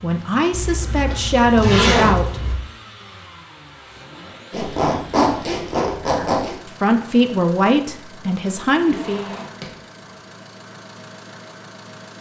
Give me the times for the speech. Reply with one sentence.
The speech can be heard from 0.0 to 2.4 s and from 6.0 to 9.2 s.